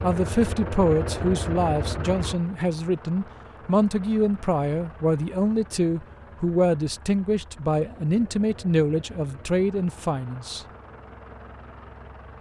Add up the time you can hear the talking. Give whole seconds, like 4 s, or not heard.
11 s.